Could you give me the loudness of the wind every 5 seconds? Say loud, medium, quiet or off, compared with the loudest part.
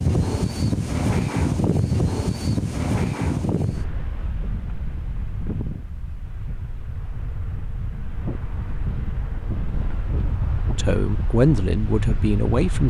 loud, medium, medium.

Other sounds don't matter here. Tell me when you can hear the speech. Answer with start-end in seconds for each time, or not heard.
10.8-12.8.